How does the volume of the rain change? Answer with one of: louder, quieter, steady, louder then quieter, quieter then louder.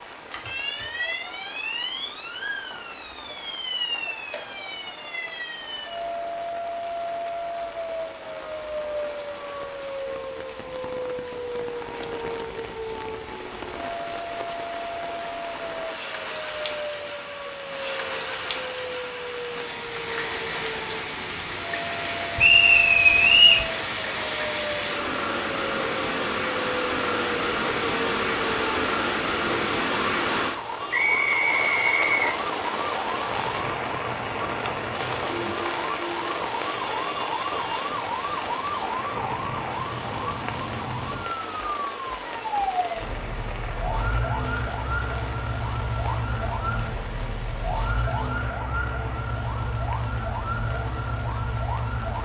louder then quieter.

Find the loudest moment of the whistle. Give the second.
23 s.